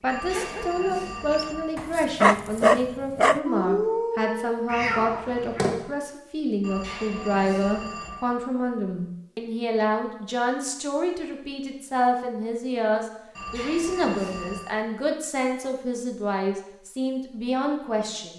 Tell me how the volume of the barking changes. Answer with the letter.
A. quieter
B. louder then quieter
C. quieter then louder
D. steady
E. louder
B.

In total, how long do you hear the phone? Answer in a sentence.
You can hear the phone for 5 seconds altogether.